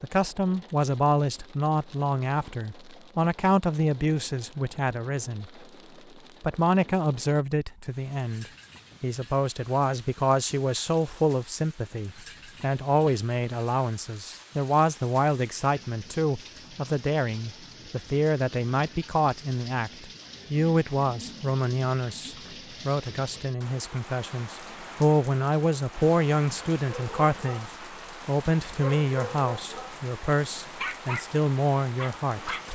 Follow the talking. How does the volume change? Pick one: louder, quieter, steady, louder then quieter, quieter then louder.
steady.